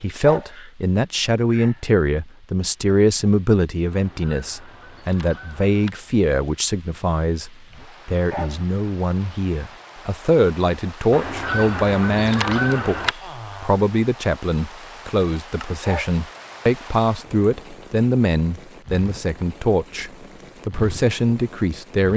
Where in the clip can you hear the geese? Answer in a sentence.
The geese can be heard from 3.9 to 5.9 s and from 11.1 to 13.2 s.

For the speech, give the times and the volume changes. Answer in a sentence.
You can hear the speech from 0.0 to 22.1 s, at a steady volume.